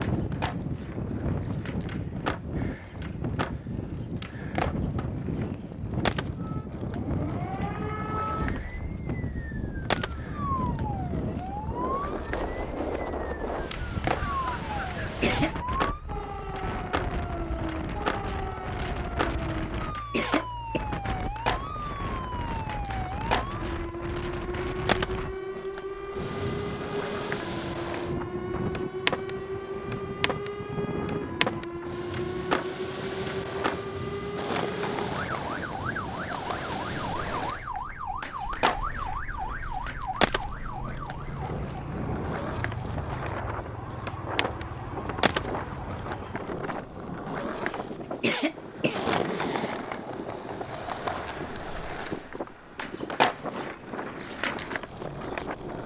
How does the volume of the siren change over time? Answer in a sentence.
The loudness of the siren stays about the same.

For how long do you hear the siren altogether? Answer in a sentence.
The siren can be heard for 40 seconds in total.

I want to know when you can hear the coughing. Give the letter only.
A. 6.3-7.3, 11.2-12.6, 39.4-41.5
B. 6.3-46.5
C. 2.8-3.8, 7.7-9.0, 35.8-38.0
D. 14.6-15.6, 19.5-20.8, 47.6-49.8
D.